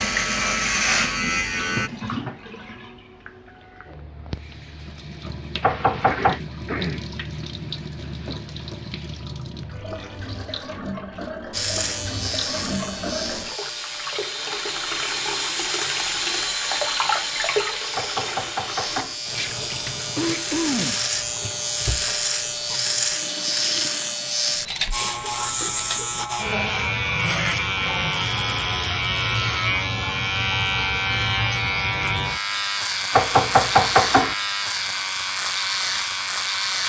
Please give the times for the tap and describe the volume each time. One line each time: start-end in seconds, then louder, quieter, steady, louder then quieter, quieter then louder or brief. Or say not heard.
0.0-26.2 louder then quieter.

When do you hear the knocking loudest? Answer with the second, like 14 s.
34 s.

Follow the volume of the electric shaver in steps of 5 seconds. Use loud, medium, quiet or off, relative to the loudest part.
loud, off, medium, medium, loud, loud, loud, loud.